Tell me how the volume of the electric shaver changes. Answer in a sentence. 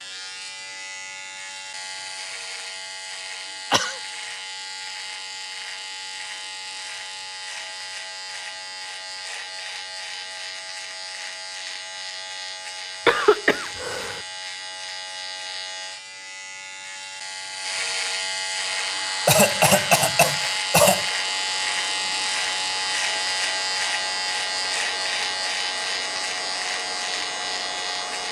The volume of the electric shaver goes up.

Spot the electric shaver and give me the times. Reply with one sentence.
The electric shaver can be heard from 0.0 to 28.2 s.